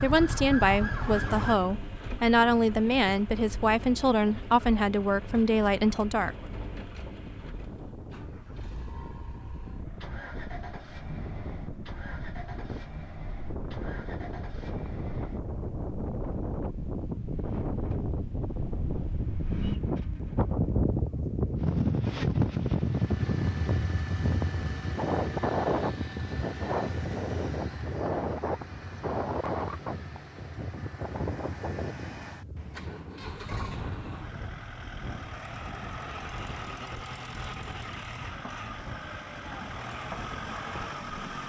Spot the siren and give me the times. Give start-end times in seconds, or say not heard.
0.0-1.6.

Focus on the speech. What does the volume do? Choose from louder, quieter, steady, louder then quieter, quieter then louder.
steady.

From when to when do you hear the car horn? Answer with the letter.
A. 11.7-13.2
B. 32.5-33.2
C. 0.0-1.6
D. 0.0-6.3
B.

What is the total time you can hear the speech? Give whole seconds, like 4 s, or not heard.
6 s.